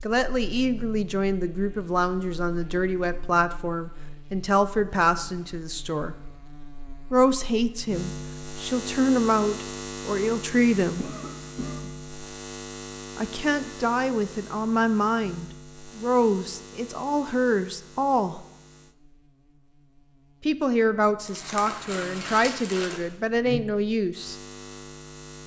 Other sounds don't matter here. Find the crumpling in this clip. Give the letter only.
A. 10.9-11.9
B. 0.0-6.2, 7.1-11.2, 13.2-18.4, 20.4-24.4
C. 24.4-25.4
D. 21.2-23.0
D.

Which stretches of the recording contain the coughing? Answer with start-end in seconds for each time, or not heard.
10.9-11.9.